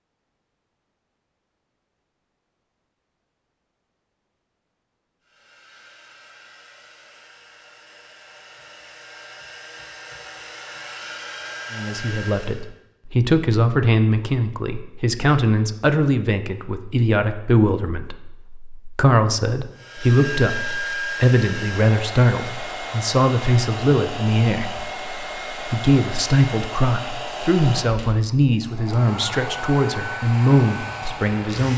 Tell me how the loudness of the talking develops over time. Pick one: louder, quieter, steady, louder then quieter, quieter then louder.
steady.